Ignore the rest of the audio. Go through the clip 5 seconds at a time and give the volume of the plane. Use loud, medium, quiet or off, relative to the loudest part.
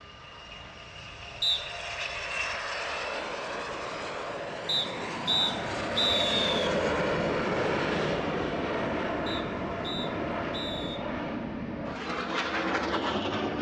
medium, loud, loud.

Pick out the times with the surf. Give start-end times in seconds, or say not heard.
not heard.